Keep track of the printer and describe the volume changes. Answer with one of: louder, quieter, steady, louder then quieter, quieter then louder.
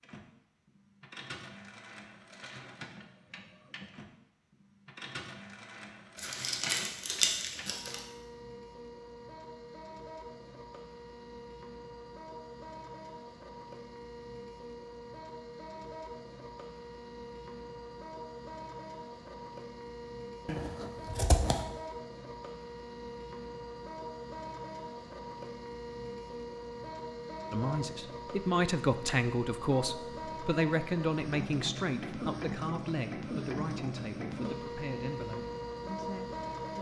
louder.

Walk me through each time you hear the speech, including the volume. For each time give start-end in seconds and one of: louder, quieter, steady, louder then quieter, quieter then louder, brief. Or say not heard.
27.5-36.7 quieter.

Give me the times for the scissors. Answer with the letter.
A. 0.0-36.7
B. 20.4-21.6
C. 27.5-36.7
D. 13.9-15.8
B.